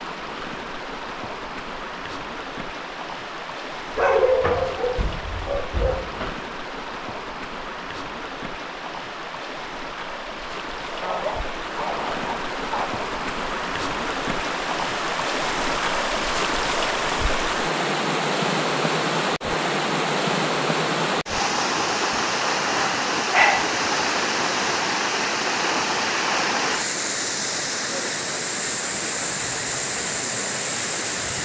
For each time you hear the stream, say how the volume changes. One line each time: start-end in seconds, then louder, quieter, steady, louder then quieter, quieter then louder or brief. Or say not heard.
0.0-31.4 louder.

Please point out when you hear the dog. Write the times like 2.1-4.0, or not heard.
4.0-6.3, 11.0-12.9, 22.8-23.8.